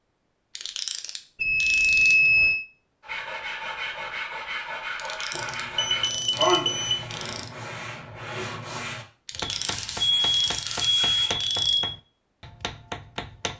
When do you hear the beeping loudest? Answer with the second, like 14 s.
2 s.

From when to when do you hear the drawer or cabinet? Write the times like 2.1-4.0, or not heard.
not heard.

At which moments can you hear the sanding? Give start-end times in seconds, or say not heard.
3.0-11.3.